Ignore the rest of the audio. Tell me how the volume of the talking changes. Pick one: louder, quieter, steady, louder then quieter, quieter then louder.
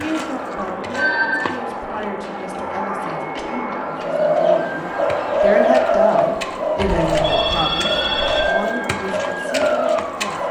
louder then quieter.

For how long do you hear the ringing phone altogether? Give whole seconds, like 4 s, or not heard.
2 s.